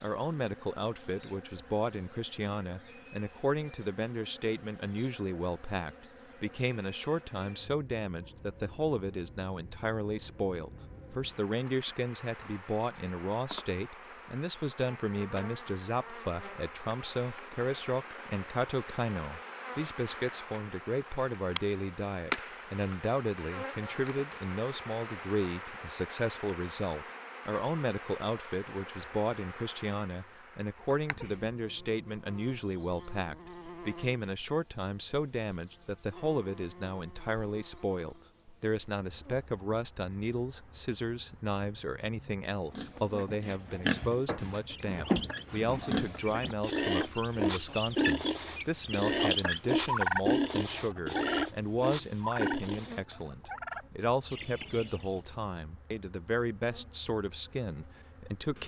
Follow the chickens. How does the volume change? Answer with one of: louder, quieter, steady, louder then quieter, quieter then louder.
louder then quieter.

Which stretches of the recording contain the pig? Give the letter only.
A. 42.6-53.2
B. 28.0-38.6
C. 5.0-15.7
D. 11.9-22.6
A.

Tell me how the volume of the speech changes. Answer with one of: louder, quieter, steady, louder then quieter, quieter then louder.
steady.